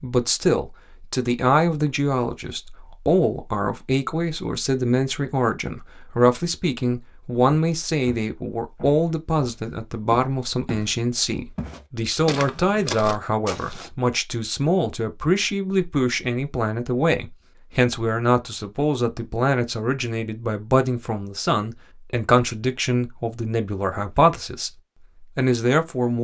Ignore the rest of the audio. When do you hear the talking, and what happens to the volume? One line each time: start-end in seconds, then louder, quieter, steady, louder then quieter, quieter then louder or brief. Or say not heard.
0.0-26.1 steady.